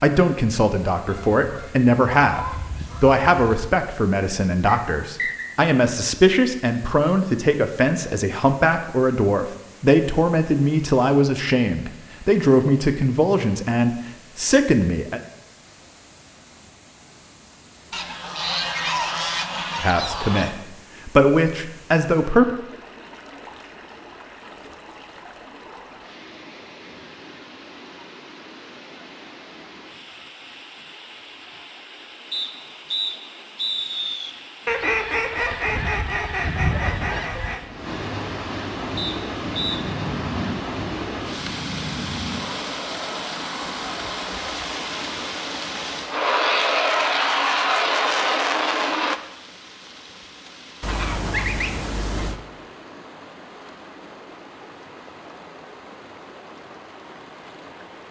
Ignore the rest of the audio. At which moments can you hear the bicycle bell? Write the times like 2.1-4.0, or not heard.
not heard.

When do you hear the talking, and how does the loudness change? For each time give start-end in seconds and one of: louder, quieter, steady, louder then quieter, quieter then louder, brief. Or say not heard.
0.0-15.2 steady
19.8-22.4 brief.